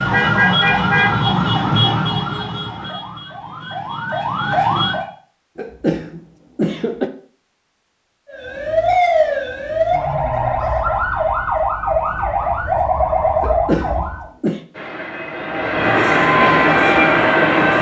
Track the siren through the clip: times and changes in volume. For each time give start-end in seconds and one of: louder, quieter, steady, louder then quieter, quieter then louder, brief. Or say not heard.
0.0-5.0 quieter then louder
8.2-14.2 steady
15.8-17.7 brief.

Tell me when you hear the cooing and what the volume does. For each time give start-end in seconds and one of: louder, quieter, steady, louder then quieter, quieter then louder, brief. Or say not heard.
not heard.